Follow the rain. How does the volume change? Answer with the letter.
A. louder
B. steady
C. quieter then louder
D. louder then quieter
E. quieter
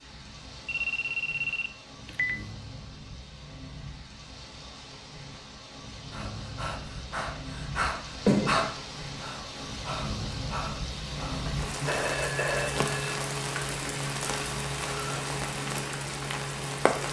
A.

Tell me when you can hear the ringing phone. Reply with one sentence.
You can hear the ringing phone from 0.7 to 2.5 s, from 8.2 to 8.7 s and from 11.4 to 12.9 s.